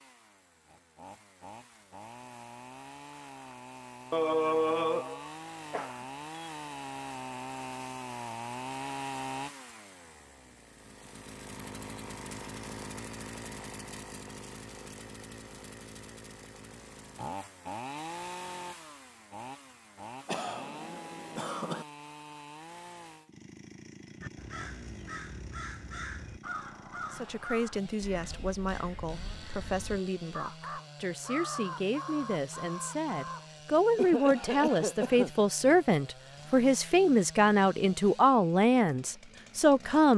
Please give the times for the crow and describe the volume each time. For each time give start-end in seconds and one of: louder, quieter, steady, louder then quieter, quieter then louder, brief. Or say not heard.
24.2-33.5 quieter then louder.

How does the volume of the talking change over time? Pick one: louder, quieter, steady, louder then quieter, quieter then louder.
louder.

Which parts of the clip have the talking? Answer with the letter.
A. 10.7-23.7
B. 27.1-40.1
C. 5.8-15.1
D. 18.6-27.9
B.